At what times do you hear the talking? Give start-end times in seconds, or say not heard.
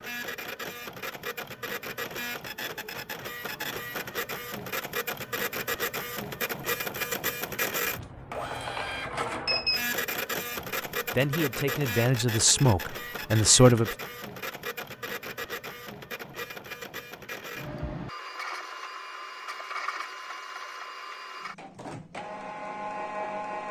11.1-13.9.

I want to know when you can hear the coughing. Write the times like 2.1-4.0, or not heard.
not heard.